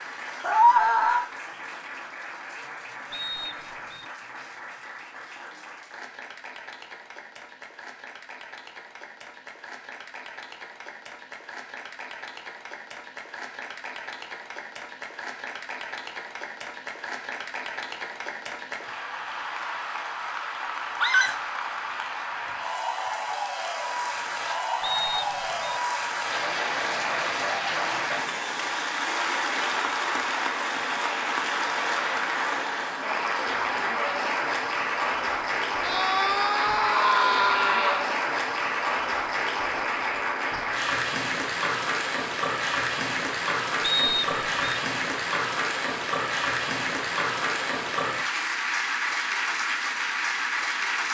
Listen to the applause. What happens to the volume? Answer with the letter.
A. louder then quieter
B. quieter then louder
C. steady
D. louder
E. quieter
D.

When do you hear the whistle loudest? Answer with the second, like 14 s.
44 s.